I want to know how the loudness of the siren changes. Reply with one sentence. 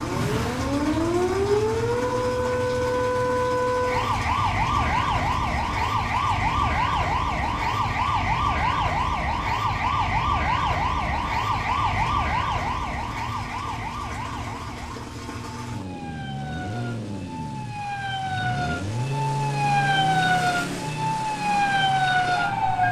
The volume of the siren goes down, then up.